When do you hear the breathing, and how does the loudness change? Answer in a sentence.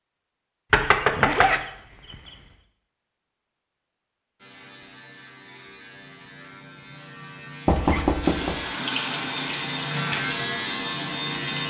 The breathing can't be heard in this clip.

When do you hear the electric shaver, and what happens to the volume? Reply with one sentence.
The electric shaver can be heard from 4.4 to 11.6 s, getting louder.